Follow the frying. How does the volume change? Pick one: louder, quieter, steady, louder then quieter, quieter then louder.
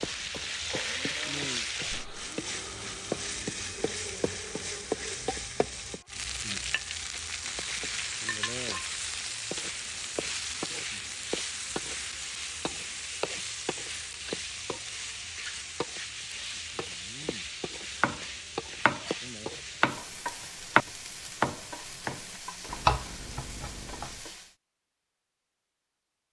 quieter.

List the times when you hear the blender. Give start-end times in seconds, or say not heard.
0.1-5.3.